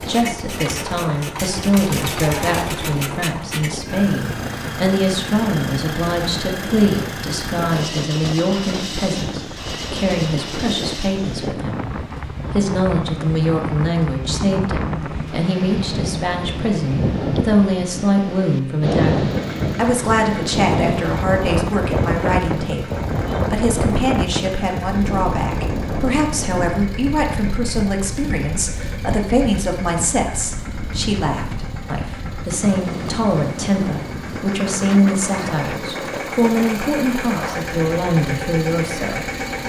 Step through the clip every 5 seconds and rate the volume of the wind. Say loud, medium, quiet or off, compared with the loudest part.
medium, medium, medium, loud, loud, medium, medium, medium.